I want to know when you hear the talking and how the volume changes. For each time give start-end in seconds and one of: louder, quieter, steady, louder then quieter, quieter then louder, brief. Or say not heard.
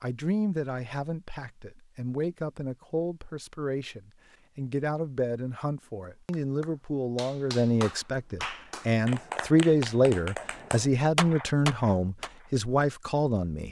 0.0-13.6 louder.